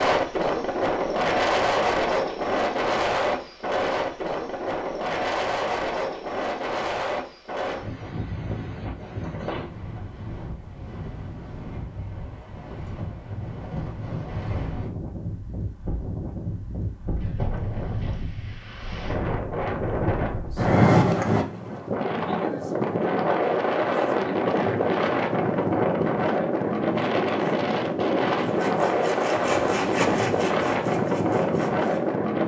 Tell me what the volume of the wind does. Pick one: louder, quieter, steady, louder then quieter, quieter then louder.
quieter then louder.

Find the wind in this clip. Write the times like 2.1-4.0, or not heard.
0.0-32.4.